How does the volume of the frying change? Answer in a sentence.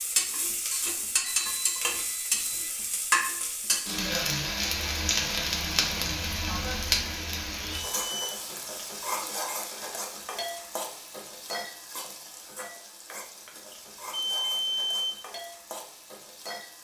The loudness of the frying goes down.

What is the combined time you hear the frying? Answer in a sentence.
The frying can be heard for 17 seconds in total.